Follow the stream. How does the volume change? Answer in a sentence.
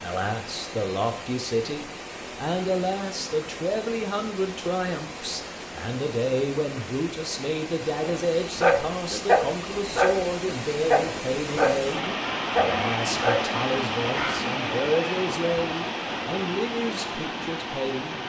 The loudness of the stream goes up.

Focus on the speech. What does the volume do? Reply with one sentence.
The loudness of the speech stays about the same.